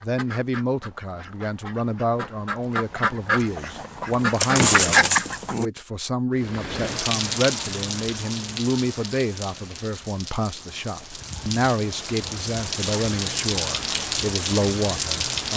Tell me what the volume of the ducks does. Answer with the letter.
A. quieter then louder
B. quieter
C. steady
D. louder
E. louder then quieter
D.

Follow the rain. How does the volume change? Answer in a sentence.
The volume of the rain goes down, then up.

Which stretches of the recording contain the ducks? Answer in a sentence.
You can hear the ducks from 0.0 to 5.7 s.